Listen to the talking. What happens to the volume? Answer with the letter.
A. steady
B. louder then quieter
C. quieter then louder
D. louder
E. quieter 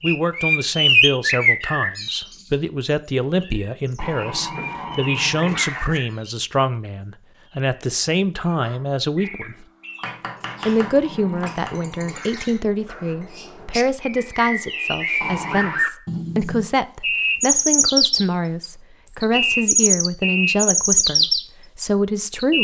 A.